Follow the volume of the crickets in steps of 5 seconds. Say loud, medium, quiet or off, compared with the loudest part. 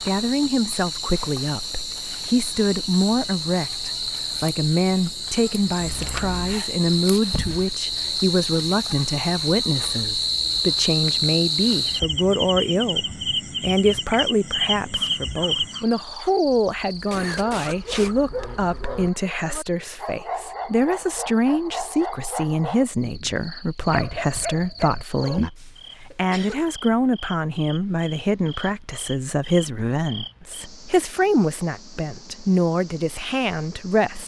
medium, loud, loud, medium, quiet, quiet, quiet.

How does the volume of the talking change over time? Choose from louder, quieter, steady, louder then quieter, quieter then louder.
steady.